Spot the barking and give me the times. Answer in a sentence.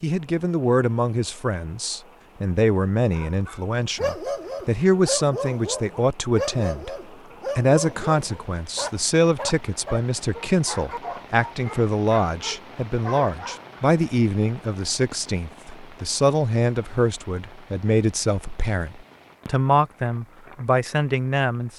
You can hear the barking from 3.1 to 13.8 s.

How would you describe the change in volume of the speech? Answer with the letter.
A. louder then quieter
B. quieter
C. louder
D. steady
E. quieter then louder
D.